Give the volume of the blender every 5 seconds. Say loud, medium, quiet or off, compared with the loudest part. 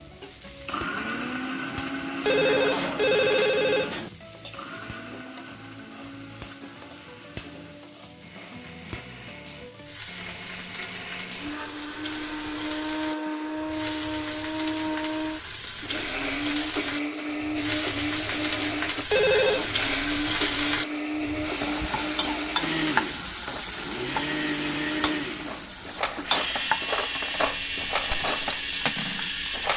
loud, quiet, loud, loud, loud, loud.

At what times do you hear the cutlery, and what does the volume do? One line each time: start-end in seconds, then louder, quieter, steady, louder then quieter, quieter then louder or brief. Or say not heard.
25.4-29.7 steady.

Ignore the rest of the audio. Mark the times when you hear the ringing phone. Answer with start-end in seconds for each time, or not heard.
2.2-4.1, 19.1-19.7.